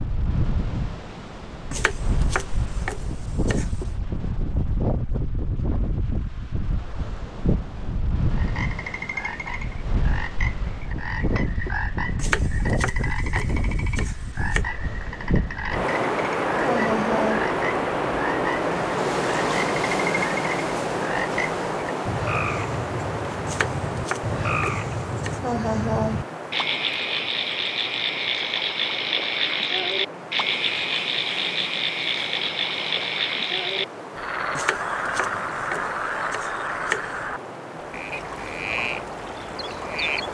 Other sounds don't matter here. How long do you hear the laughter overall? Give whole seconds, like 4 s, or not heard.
2 s.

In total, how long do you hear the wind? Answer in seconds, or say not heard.
40 s.